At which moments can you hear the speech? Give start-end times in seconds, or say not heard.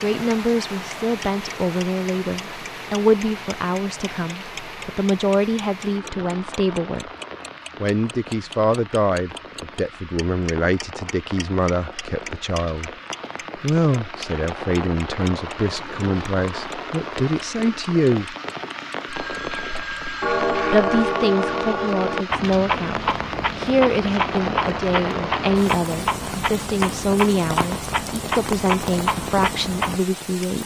0.0-7.0, 7.8-12.9, 13.6-18.4, 20.7-30.6.